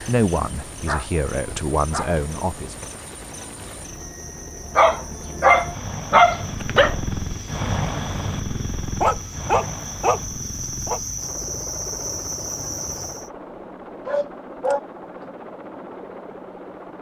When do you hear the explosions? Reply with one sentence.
The explosions can be heard from 6.7 to 7.2 s.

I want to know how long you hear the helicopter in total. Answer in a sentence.
You can hear the helicopter for 17 seconds altogether.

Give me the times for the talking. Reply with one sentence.
The talking can be heard from 0.1 to 3.0 s.